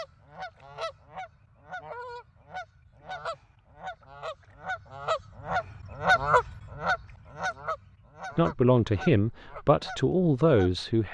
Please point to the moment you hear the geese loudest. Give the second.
6 s.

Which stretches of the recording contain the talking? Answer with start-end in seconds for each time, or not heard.
8.3-11.0.